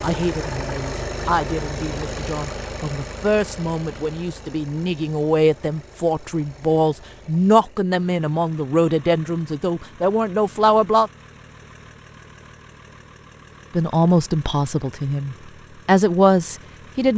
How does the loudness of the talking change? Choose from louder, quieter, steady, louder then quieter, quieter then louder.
louder.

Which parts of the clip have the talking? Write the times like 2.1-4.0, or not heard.
0.0-11.1, 13.7-17.1.